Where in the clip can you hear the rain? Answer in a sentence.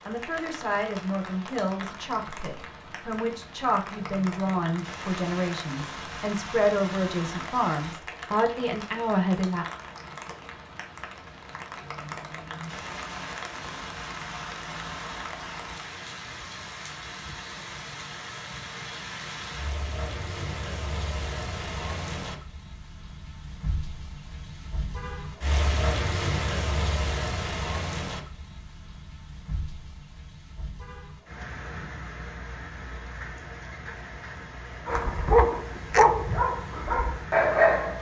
The rain can be heard from 0.0 to 37.9 s.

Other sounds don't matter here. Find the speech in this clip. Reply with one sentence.
You can hear the speech from 0.1 to 9.7 s.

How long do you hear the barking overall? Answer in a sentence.
You can hear the barking for 3 seconds altogether.